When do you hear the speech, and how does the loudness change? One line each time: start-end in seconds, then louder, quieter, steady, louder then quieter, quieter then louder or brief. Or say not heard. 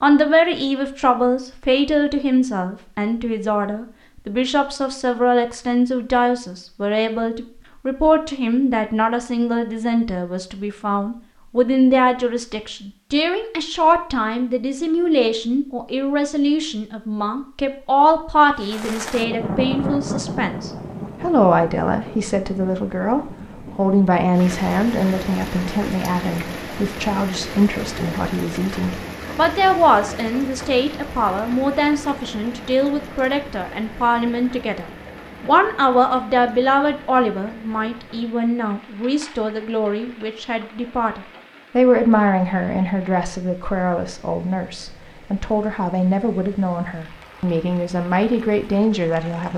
0.0-49.5 steady.